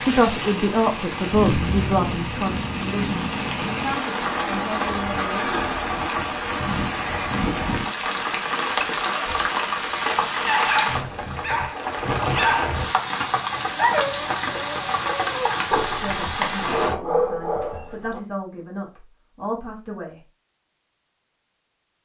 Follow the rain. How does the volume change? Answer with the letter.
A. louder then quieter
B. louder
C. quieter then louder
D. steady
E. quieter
D.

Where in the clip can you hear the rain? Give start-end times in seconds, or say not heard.
0.0-16.9.